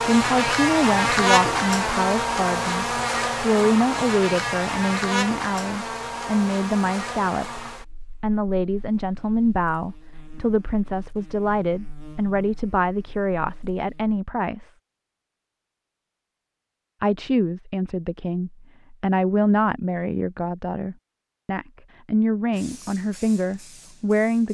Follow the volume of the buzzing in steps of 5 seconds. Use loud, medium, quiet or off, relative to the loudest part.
loud, medium, quiet, off, off.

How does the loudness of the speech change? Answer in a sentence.
The volume of the speech stays about the same.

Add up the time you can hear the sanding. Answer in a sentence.
You can't hear the sanding here.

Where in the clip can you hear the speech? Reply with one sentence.
The speech can be heard from 0.1 to 14.7 s and from 17.0 to 24.4 s.